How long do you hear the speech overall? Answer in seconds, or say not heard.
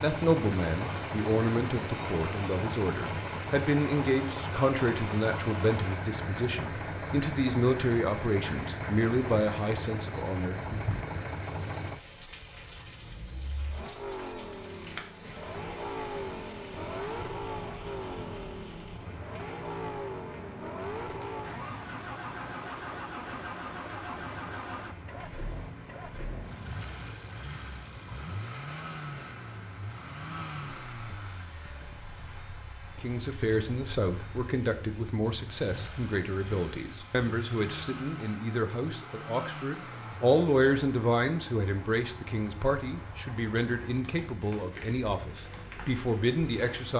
25 s.